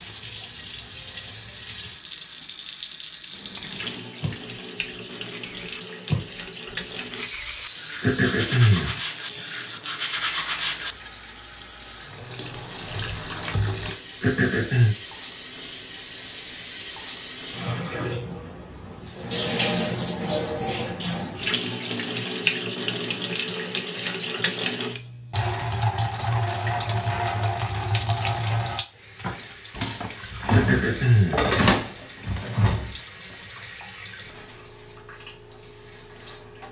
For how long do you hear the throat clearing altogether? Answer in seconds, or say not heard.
3 s.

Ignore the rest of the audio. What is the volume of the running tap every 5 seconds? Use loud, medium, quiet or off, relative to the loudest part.
medium, medium, medium, loud, loud, loud, loud, quiet.